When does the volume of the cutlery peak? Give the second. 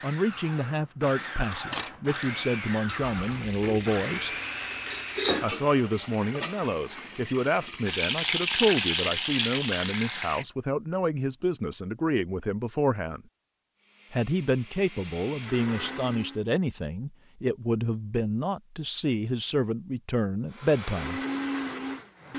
5 s.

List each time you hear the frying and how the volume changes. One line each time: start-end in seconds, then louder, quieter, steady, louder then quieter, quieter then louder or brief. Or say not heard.
3.1-10.4 louder.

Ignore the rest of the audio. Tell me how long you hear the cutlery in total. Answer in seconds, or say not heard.
5 s.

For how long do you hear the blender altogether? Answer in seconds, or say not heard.
12 s.